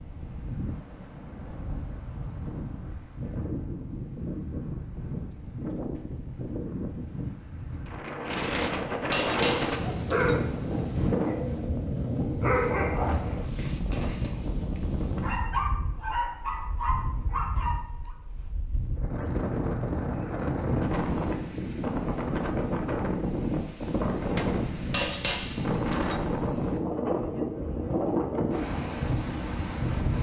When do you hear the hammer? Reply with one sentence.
The hammer can be heard from 8.5 to 10.4 s and from 24.4 to 26.3 s.